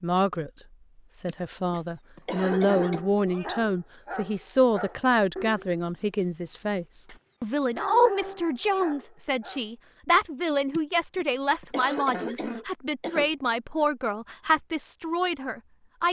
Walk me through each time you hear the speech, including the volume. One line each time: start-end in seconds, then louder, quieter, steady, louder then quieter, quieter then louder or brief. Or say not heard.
0.0-0.5 brief
1.1-16.0 steady.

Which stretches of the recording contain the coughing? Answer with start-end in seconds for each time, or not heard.
1.2-3.0, 10.7-13.3.